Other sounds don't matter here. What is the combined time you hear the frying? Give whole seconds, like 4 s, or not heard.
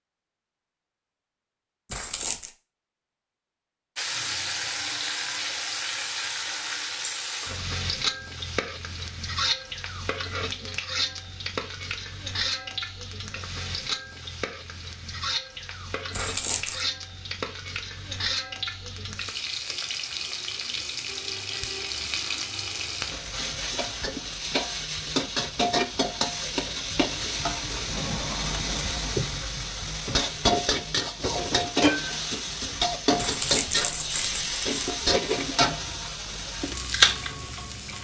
34 s.